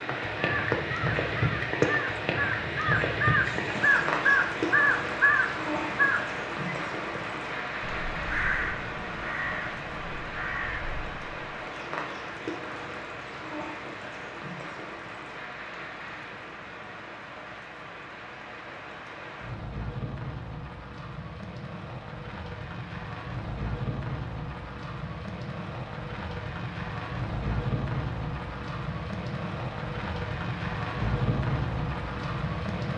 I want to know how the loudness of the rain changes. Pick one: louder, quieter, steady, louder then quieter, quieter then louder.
quieter then louder.